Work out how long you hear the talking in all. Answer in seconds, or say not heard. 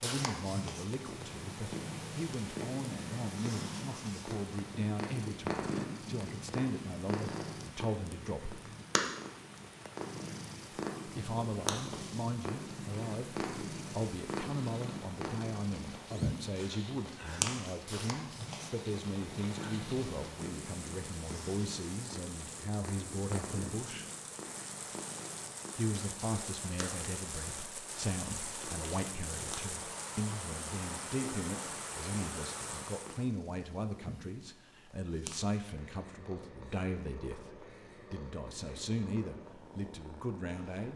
37 s.